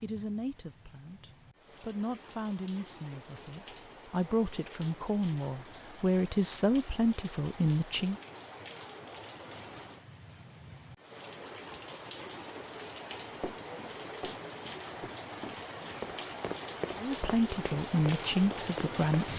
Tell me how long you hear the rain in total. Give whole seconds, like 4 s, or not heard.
19 s.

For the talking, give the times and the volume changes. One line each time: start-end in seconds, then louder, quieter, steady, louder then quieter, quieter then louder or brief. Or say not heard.
0.0-8.2 louder
16.9-19.3 brief.